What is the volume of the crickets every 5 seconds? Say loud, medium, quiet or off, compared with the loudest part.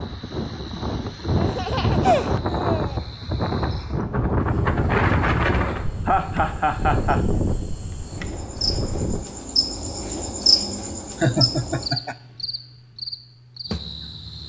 quiet, medium, loud.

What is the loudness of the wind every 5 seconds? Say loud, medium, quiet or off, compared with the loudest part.
loud, loud, off.